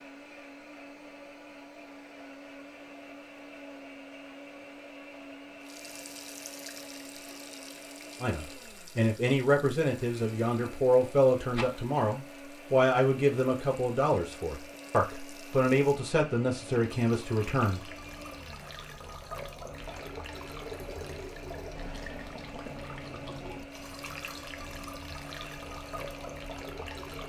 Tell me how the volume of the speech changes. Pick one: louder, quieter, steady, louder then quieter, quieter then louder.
steady.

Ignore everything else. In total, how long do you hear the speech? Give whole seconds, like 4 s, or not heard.
10 s.